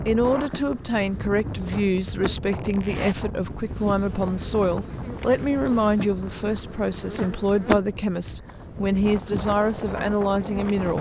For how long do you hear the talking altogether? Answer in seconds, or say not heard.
11 s.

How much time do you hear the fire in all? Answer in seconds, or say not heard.
not heard.